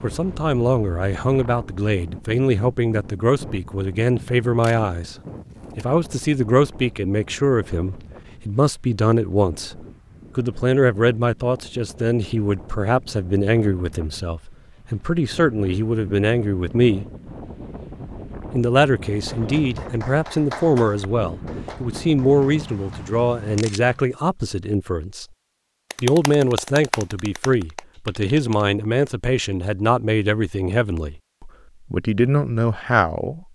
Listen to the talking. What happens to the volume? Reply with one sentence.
The loudness of the talking stays about the same.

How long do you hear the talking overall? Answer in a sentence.
You can hear the talking for 31 seconds altogether.